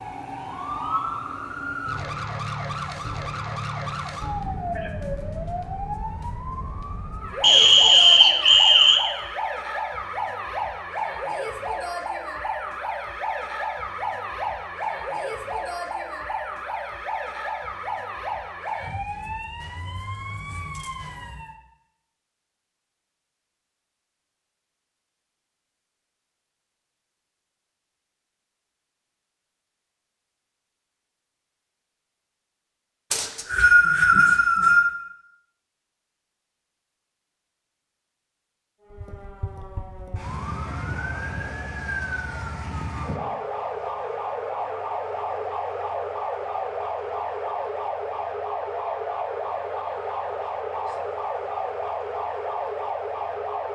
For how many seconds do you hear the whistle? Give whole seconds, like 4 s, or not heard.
3 s.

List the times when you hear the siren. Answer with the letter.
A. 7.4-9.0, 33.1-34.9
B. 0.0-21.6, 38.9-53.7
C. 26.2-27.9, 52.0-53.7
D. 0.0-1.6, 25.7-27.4
B.